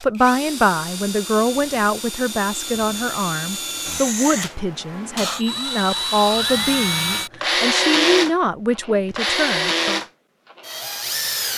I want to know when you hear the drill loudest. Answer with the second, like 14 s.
8 s.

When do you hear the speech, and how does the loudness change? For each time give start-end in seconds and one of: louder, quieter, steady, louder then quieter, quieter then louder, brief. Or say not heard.
0.0-10.0 steady.